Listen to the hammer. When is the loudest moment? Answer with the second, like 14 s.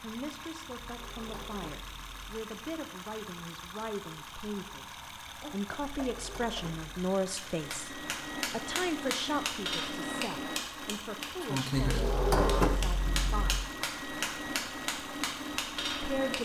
12 s.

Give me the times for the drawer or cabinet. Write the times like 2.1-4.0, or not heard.
0.8-2.4, 5.8-6.8, 11.8-13.7.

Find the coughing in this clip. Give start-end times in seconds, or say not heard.
5.4-6.6.